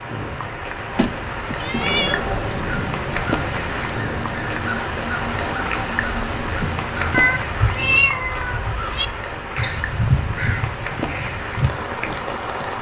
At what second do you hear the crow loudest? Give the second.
10 s.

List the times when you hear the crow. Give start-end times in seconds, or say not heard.
1.7-11.8.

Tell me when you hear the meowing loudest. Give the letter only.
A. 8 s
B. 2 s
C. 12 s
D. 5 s
A.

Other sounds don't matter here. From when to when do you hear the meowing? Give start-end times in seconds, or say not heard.
0.9-2.4, 7.1-9.1.